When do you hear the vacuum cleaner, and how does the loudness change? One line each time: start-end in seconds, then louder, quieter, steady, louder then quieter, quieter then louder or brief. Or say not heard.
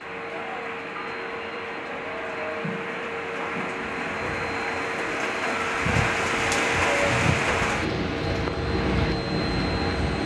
0.0-10.2 louder.